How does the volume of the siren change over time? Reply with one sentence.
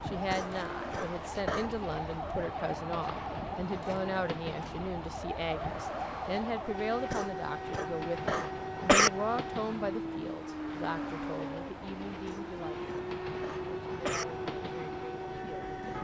The volume of the siren stays about the same.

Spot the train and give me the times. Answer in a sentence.
You can hear the train from 0.0 to 15.9 s.